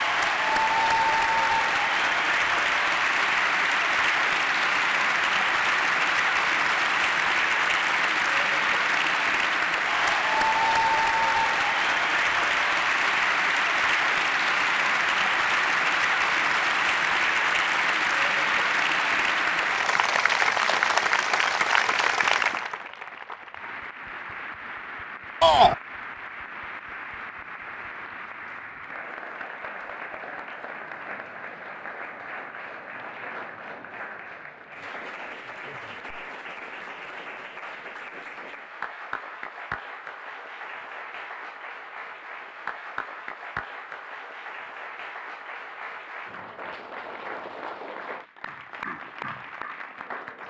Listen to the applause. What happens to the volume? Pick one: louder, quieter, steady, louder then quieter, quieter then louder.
quieter.